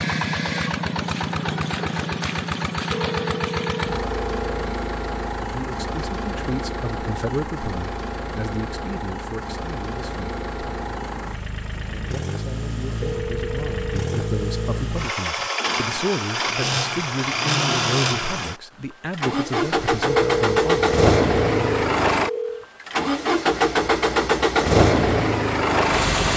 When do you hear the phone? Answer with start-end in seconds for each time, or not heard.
2.9-4.7, 13.0-14.8, 20.1-22.6.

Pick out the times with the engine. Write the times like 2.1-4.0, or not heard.
0.0-26.3.